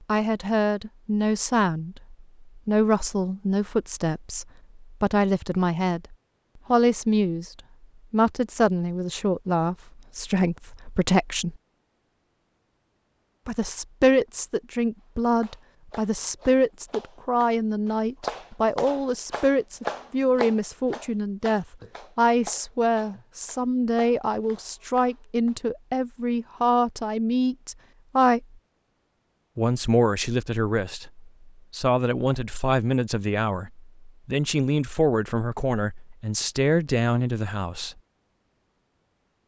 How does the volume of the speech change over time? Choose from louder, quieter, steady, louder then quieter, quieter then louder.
steady.